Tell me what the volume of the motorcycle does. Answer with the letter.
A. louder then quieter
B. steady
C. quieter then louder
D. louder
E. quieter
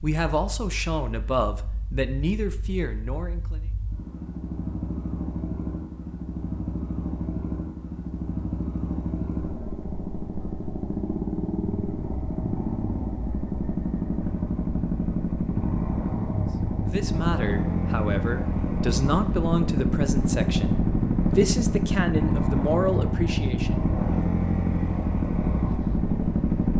D.